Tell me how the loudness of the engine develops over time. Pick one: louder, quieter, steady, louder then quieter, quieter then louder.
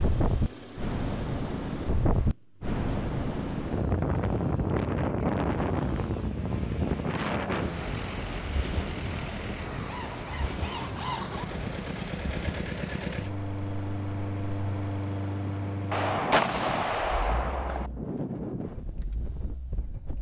louder then quieter.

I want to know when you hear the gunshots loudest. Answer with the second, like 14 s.
16 s.